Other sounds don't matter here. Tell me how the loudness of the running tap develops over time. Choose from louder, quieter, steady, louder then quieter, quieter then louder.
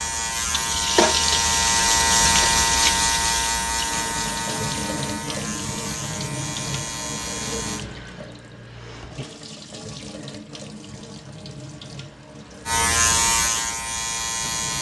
quieter.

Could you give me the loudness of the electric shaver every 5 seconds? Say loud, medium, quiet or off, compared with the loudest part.
loud, medium, loud.